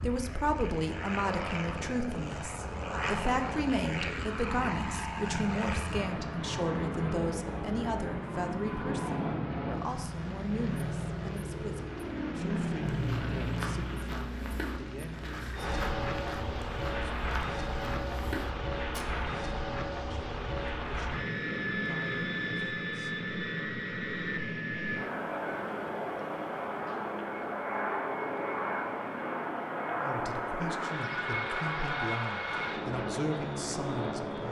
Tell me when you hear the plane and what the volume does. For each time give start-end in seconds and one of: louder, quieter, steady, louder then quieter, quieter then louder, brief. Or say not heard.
0.0-34.4 steady.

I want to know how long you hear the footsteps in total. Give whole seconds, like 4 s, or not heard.
6 s.